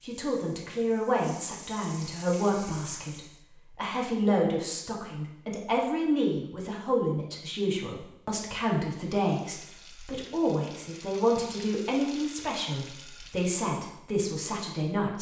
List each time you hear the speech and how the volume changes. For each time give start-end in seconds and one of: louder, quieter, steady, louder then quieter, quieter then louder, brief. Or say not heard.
0.1-15.1 steady.